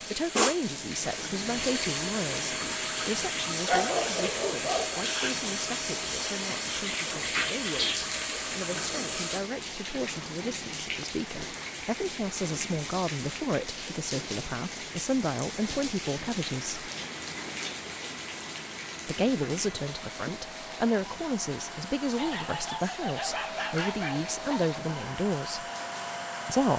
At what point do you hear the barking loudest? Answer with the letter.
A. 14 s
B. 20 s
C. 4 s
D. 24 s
C.